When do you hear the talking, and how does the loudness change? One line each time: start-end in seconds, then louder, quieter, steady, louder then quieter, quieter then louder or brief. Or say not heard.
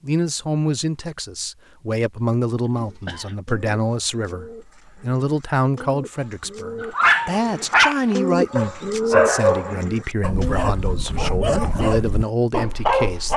0.0-13.3 steady.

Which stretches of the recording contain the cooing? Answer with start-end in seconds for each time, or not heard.
2.7-12.3.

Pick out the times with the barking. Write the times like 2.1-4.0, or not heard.
6.8-13.3.